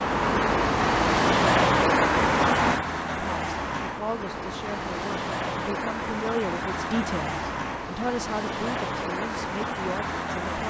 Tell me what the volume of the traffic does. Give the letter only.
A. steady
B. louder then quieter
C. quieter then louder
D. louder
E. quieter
E.